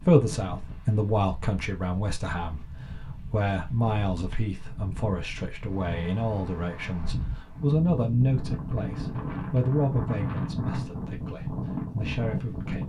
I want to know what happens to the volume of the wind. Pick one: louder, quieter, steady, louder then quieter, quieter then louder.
louder.